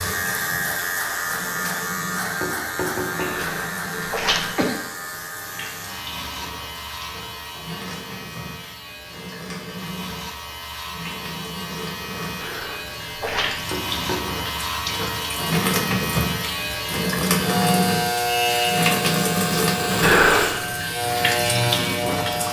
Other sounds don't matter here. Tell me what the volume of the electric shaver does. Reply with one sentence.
The volume of the electric shaver goes down, then up.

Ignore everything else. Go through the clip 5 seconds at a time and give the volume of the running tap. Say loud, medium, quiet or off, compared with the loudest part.
quiet, quiet, medium, loud, loud.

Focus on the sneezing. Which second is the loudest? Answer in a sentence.
The volume of the sneezing peaks at 20 seconds.